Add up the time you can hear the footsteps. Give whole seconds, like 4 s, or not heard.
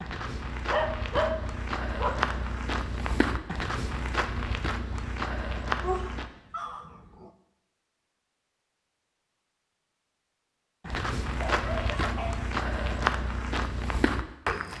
10 s.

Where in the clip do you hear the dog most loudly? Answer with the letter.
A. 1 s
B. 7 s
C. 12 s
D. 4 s
A.